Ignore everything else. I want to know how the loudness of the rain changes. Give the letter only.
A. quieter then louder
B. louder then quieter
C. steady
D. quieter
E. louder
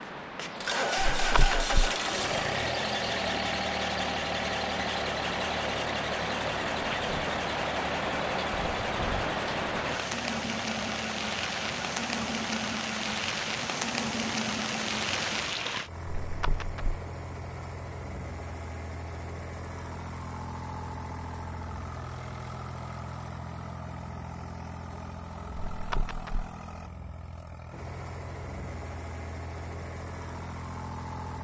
E.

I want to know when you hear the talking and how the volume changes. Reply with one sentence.
You can't hear the talking here.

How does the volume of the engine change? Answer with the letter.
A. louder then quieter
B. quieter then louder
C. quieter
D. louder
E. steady
C.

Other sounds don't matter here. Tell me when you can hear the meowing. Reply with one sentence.
You can hear the meowing from 0.9 to 1.9 s, from 16.2 to 17.0 s and from 25.6 to 26.5 s.